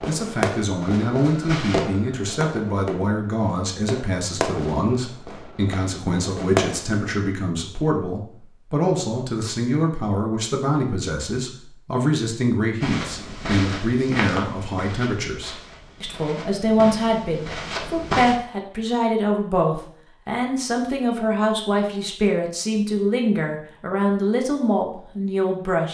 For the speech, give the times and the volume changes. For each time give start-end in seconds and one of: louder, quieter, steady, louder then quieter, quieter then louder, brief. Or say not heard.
0.1-25.8 steady.